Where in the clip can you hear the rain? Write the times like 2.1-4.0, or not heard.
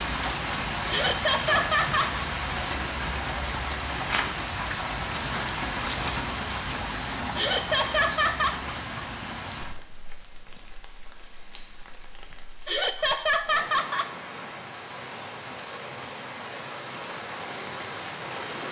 0.0-18.6.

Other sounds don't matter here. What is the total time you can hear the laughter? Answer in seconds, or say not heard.
4 s.